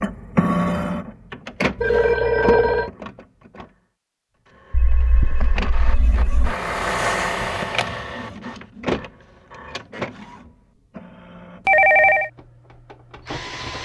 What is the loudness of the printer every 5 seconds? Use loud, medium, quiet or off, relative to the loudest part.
loud, loud, medium.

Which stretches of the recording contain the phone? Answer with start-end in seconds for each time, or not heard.
1.8-2.9, 4.7-6.3, 11.7-12.3.